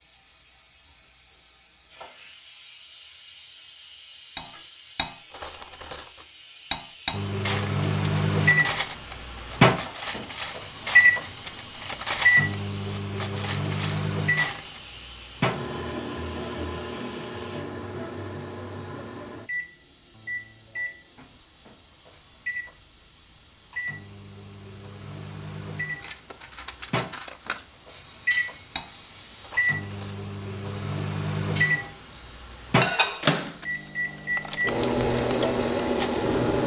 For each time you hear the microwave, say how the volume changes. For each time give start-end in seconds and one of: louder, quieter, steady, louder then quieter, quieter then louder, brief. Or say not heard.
7.1-36.6 quieter then louder.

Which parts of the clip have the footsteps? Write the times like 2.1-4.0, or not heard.
not heard.